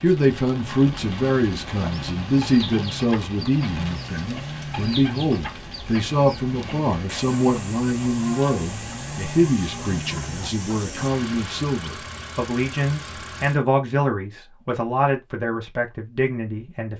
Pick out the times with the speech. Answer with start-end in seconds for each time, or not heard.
0.0-16.9.